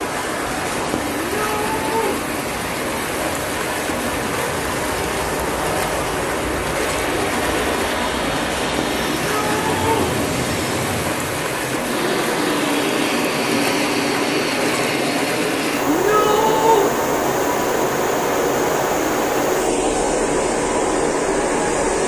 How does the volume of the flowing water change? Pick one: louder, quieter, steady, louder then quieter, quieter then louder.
steady.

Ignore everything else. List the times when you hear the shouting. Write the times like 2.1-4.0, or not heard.
1.2-2.1, 9.1-10.1, 15.8-16.9.